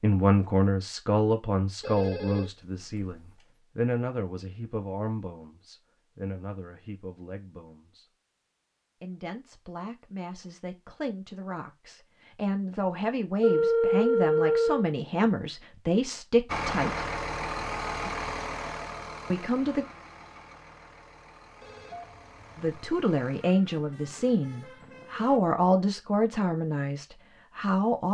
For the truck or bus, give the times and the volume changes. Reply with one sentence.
The truck or bus can be heard from 16.4 to 25.4 s, getting quieter.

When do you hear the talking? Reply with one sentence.
The talking can be heard from 0.0 to 8.1 s, from 9.0 to 17.1 s, from 19.3 to 19.9 s and from 22.6 to 28.0 s.